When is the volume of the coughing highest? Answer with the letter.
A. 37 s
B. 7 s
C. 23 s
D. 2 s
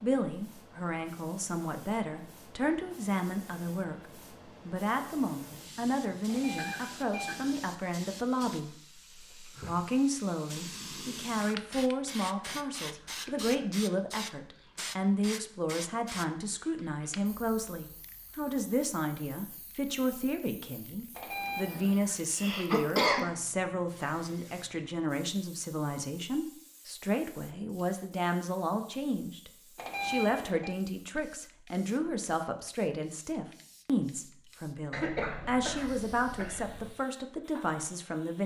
C.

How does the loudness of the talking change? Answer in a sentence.
The volume of the talking stays about the same.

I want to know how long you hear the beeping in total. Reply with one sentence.
You can hear the beeping for 3 seconds altogether.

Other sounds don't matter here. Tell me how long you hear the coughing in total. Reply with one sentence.
You can hear the coughing for 5 seconds altogether.